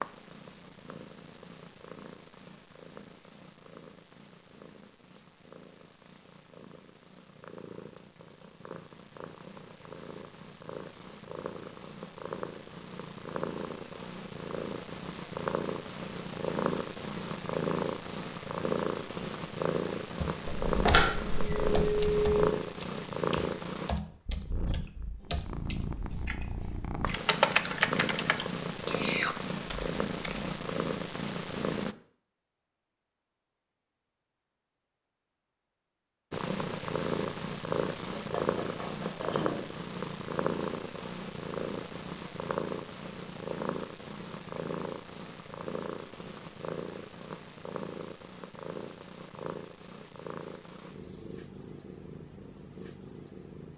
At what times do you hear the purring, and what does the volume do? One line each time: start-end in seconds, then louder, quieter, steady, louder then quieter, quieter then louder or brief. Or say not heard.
0.0-31.9 louder
36.3-53.7 quieter.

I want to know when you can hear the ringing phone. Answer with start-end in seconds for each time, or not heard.
20.4-22.4.